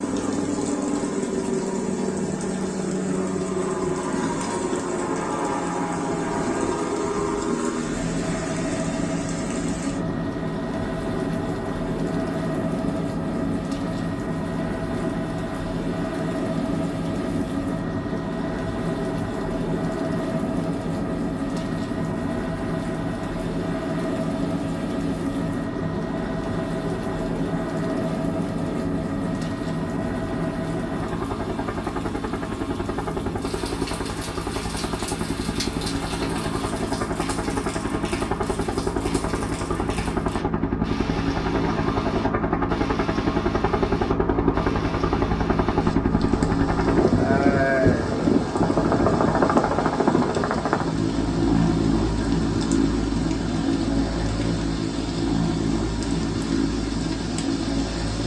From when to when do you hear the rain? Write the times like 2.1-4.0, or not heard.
0.0-58.2.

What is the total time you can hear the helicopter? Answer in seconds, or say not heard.
58 s.